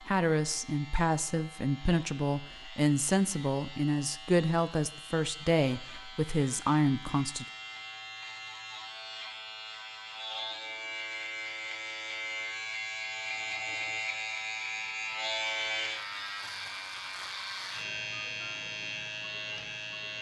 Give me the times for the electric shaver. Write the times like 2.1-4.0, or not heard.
0.0-20.1.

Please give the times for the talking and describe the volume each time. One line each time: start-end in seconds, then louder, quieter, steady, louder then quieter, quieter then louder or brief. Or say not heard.
0.0-7.5 steady.